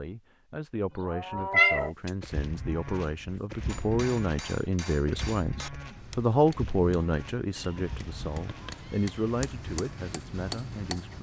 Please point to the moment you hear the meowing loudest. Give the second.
2 s.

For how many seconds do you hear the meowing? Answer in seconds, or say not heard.
2 s.